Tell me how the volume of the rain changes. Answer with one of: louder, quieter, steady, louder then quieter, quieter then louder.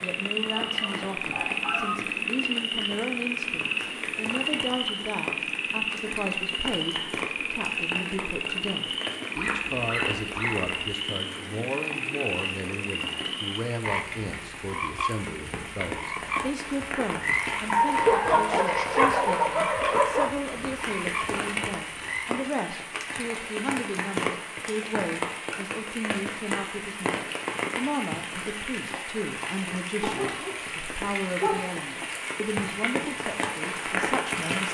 louder.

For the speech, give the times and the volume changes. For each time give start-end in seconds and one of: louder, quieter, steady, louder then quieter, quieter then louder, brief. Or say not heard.
0.0-34.6 steady.